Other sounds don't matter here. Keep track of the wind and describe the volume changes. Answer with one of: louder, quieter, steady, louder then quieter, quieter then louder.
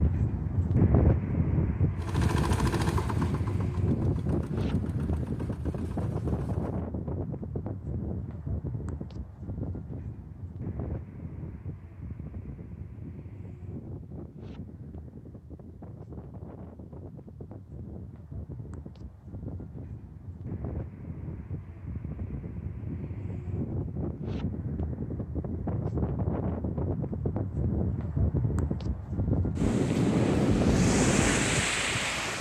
quieter then louder.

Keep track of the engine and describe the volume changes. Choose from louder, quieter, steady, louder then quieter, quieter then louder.
quieter.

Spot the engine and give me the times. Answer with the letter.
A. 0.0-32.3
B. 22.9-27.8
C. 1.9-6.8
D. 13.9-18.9
C.